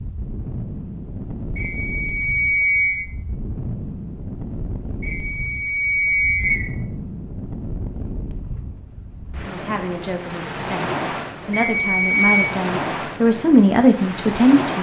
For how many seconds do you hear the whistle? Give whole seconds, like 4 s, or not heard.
4 s.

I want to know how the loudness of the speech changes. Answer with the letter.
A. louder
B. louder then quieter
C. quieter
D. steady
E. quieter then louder
A.